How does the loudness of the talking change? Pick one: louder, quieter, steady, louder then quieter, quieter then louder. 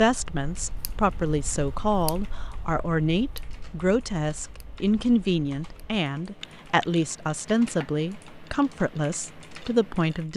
steady.